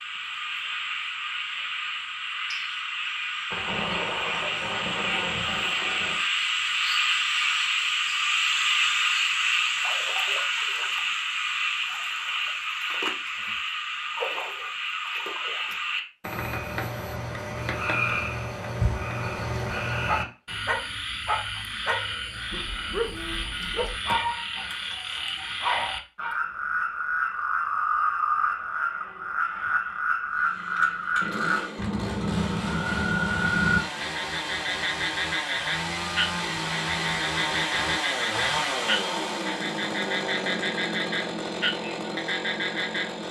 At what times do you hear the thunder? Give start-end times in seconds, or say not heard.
3.5-6.2.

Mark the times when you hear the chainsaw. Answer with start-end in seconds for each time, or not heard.
30.3-43.2.